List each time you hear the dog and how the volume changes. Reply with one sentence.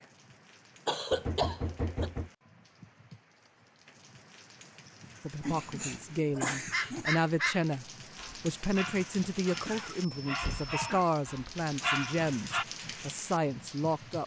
You can hear the dog from 6.5 to 12.7 s, getting quieter then louder.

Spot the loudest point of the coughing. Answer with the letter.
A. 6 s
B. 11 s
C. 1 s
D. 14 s
C.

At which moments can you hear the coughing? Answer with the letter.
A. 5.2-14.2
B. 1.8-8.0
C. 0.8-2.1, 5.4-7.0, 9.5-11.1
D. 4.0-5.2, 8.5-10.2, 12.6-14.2
C.